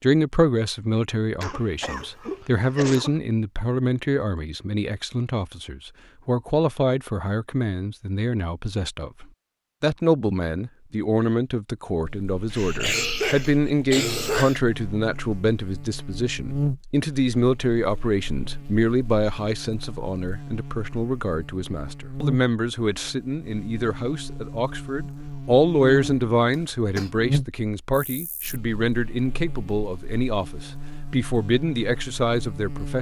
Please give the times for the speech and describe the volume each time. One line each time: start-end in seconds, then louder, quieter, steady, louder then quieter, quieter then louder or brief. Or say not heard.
0.0-32.9 steady.